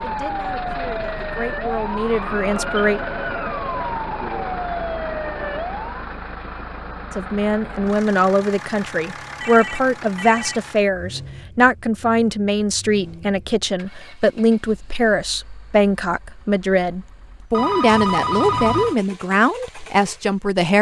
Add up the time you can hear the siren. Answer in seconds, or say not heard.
6 s.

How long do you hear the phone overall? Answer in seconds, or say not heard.
4 s.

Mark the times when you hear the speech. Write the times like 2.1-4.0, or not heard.
0.0-3.0, 7.2-20.7.